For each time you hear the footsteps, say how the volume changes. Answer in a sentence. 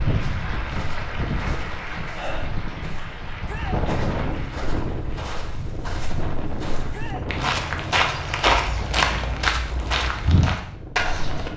You can hear the footsteps from 0.2 to 11.5 s, getting louder.